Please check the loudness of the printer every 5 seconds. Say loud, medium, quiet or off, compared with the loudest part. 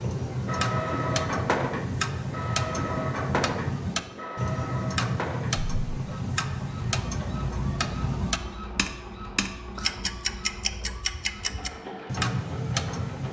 loud, medium, medium.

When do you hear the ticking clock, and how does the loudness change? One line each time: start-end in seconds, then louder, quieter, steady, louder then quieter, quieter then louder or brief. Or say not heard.
0.0-13.2 steady.